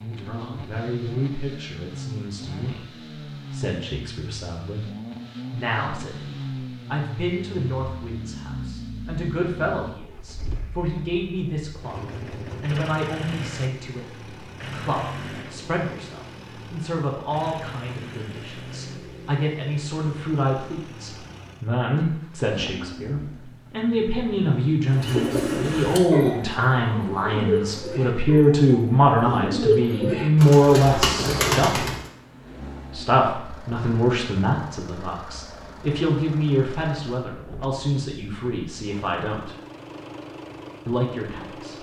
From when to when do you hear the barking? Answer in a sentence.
The barking can't be heard in this clip.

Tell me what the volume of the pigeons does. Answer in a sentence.
The loudness of the pigeons goes down, then up.